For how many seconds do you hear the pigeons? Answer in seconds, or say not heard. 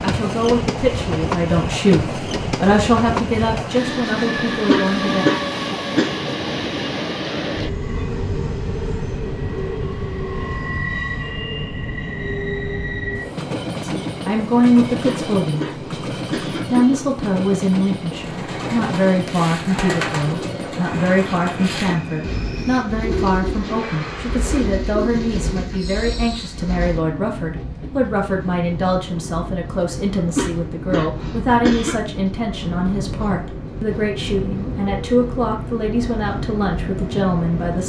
9 s.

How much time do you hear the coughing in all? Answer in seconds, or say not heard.
6 s.